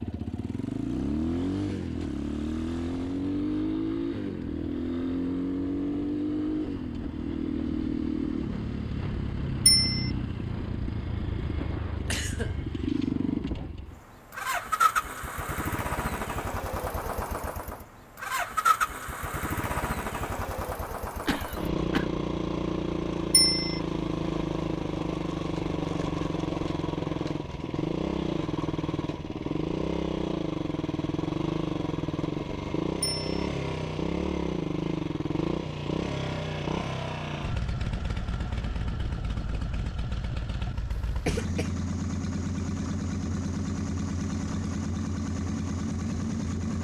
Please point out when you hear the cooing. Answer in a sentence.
You can't hear the cooing here.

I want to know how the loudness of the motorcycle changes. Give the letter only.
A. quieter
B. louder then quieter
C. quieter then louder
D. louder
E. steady
E.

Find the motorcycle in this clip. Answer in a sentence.
You can hear the motorcycle from 0.0 to 46.7 s.